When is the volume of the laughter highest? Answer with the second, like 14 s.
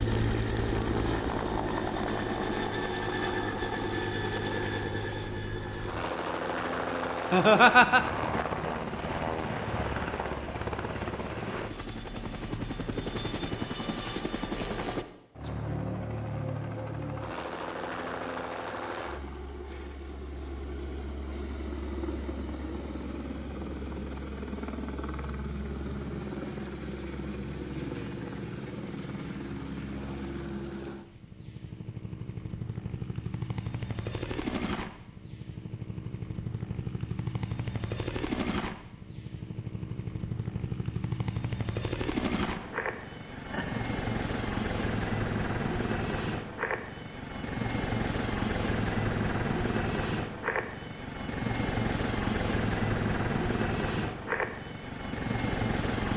8 s.